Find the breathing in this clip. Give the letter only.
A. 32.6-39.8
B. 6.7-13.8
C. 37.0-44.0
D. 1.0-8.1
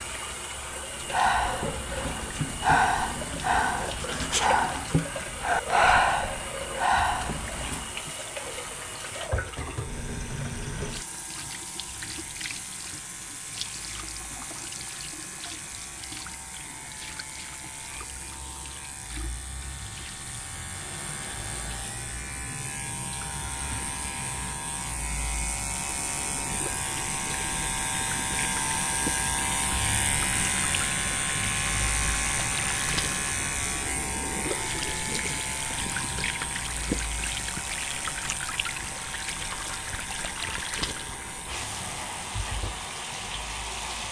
D.